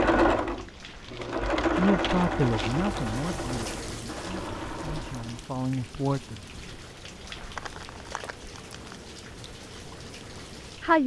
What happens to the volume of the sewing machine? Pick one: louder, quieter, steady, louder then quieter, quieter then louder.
louder then quieter.